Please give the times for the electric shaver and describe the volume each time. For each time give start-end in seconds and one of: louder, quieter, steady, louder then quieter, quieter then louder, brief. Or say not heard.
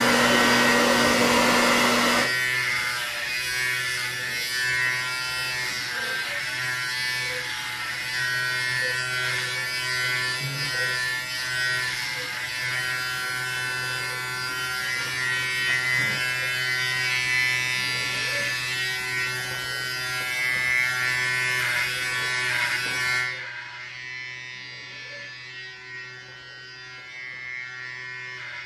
0.0-28.6 quieter.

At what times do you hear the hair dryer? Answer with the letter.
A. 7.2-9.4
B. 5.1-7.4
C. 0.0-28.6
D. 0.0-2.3
D.